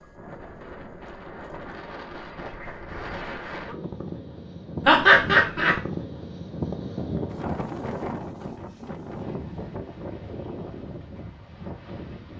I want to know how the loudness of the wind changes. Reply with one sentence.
The loudness of the wind goes up, then down.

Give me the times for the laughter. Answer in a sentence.
You can hear the laughter from 4.8 to 5.8 s.